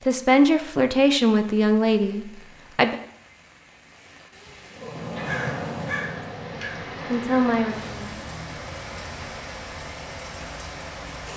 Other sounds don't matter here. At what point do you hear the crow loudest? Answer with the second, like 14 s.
5 s.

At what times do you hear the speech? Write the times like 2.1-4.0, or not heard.
0.1-3.0, 7.0-8.2.